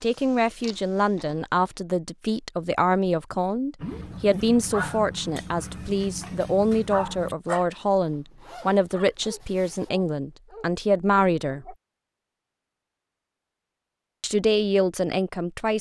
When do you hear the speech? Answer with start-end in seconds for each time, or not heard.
0.0-11.8, 14.2-15.7.